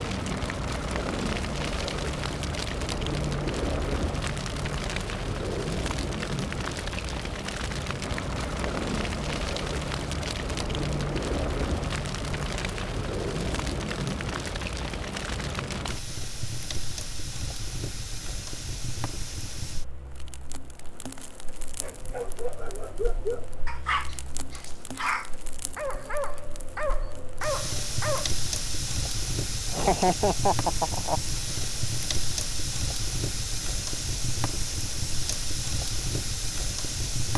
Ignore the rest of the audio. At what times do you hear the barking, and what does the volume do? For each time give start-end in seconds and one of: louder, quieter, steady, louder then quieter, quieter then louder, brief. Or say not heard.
21.8-28.3 steady.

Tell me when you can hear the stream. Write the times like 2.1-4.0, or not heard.
not heard.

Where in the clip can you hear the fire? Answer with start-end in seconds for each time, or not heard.
0.0-37.3.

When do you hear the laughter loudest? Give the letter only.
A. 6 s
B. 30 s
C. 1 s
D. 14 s
B.